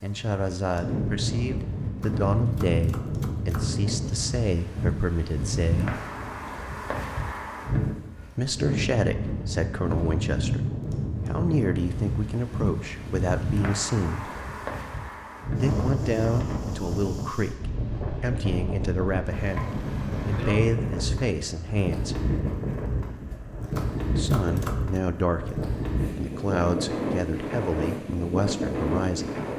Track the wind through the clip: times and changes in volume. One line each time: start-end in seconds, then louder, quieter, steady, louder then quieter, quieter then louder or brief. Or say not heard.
0.0-29.5 steady.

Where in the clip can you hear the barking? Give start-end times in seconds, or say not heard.
not heard.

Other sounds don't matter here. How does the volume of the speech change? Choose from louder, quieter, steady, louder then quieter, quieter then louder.
steady.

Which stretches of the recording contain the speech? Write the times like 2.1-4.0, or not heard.
0.0-6.0, 8.3-14.3, 15.6-22.2, 24.1-29.4.